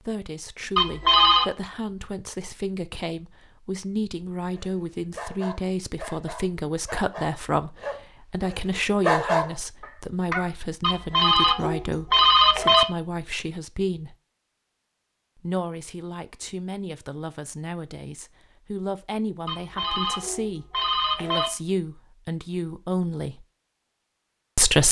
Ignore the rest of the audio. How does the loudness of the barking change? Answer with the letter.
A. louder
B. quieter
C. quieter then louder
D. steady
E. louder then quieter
A.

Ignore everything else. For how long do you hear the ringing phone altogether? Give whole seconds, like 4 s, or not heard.
5 s.